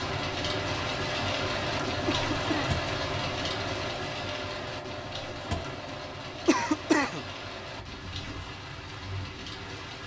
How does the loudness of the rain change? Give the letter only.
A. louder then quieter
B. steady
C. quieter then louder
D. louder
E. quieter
E.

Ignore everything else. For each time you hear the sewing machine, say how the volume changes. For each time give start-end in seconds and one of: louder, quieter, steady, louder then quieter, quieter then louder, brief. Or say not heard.
0.0-9.8 quieter.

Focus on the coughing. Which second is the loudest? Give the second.
7 s.